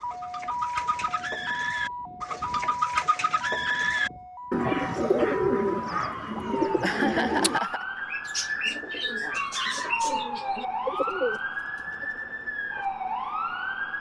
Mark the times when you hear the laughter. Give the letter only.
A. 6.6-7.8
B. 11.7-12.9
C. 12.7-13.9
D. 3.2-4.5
A.